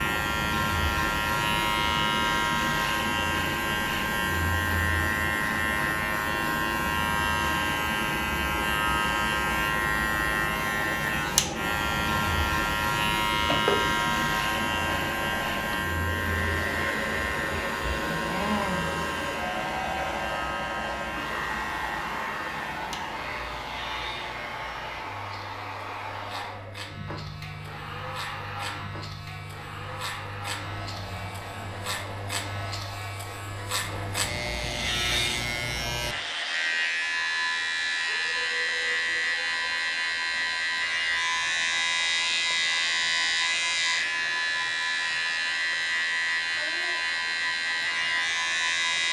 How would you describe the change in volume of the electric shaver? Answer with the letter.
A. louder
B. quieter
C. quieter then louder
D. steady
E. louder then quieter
C.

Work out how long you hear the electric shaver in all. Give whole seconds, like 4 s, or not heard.
49 s.